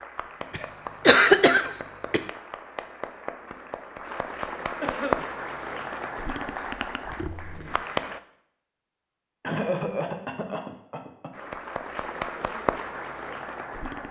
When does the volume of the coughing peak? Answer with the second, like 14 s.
1 s.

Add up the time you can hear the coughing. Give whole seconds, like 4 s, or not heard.
4 s.